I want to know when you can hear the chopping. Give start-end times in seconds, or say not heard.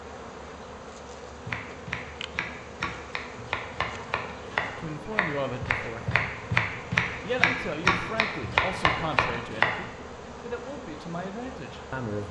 1.4-9.8.